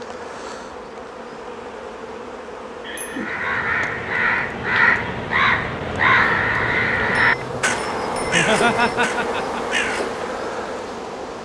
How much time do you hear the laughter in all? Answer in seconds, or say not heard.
2 s.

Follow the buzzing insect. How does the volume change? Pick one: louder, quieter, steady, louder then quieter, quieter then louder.
louder.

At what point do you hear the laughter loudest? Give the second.
9 s.